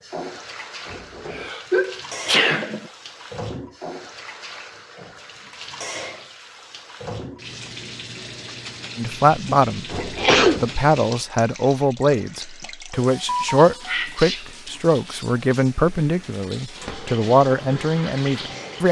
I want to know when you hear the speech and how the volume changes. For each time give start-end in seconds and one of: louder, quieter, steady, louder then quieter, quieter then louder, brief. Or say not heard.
8.9-18.8 steady.